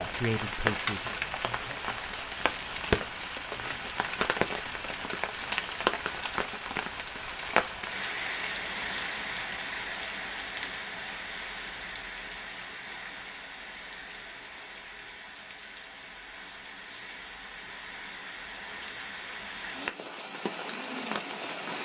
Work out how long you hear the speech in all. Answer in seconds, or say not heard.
2 s.